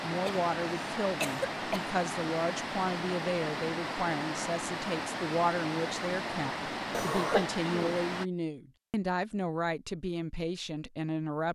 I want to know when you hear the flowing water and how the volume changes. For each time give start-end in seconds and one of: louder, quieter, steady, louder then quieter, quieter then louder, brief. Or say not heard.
0.0-8.3 steady.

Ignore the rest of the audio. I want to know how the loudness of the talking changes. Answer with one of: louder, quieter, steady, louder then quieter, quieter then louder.
steady.